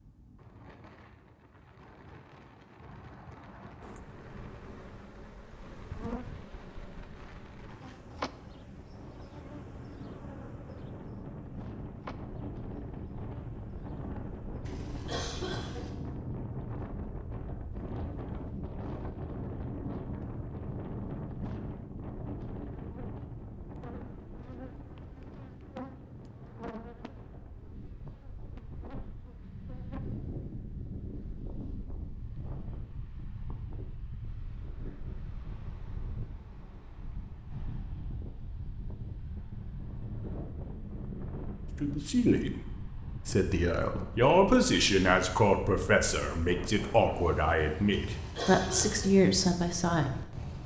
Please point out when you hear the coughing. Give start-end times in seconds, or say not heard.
14.7-15.9, 47.9-49.1.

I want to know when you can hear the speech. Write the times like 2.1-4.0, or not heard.
41.8-50.4.